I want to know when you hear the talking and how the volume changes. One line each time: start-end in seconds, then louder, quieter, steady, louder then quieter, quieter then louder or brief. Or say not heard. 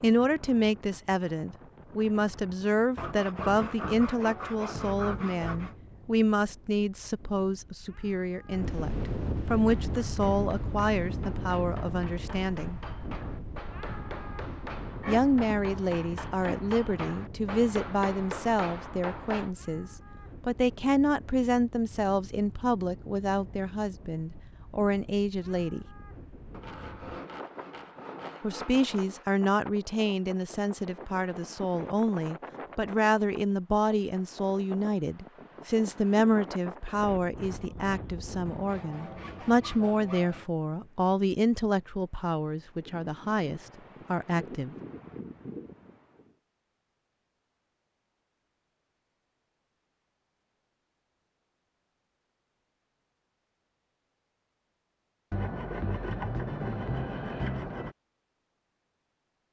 0.0-12.8 steady
15.1-25.9 steady
28.4-44.8 steady.